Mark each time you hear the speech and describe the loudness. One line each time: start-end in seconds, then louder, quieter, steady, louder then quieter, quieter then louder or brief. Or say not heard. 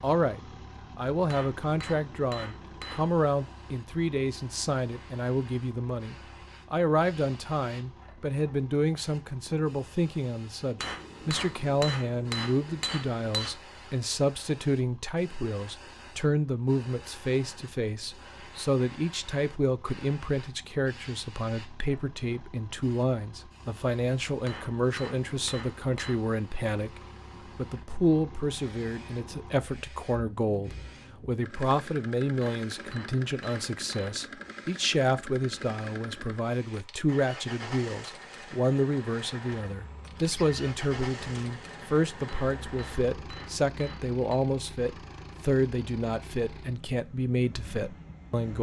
0.0-48.5 steady.